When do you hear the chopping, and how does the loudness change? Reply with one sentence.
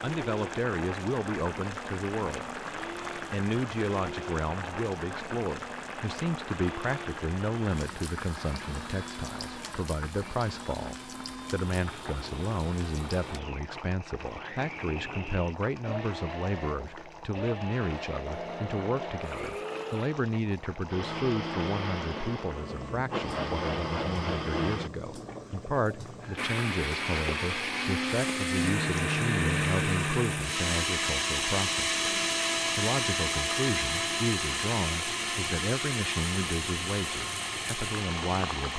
The chopping can't be heard in this clip.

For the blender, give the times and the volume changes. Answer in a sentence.
The blender can be heard from 0.0 to 38.7 s, getting louder.